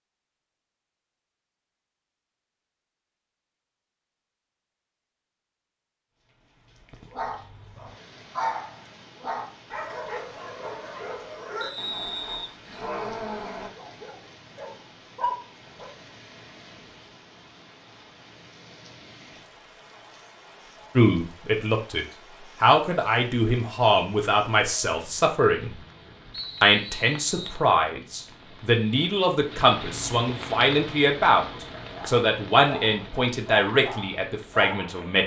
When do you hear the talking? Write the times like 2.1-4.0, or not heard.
20.9-25.8, 26.6-35.2.